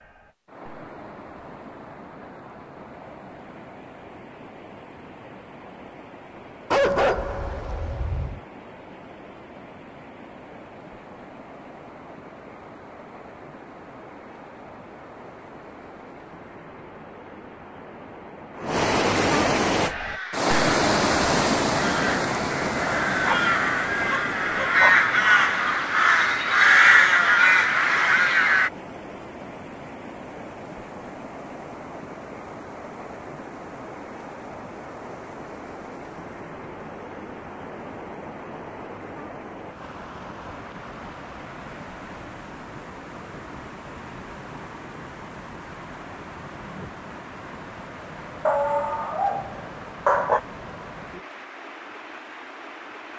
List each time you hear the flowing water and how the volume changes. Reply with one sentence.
The flowing water can be heard from 0.0 to 53.1 s, getting louder then quieter.